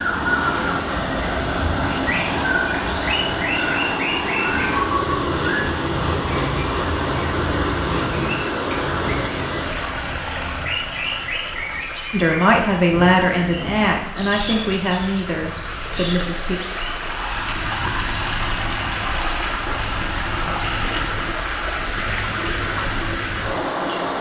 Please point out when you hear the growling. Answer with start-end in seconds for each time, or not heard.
not heard.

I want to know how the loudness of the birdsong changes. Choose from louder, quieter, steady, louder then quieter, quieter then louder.
quieter.